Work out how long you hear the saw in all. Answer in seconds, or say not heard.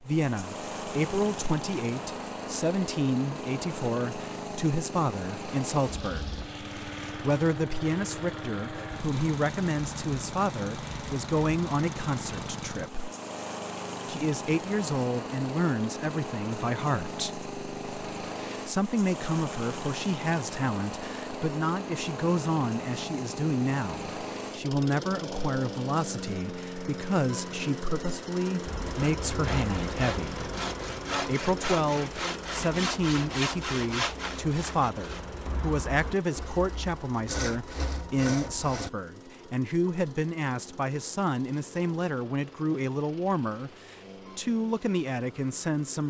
10 s.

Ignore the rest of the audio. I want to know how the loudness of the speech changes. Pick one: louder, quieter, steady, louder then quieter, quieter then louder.
steady.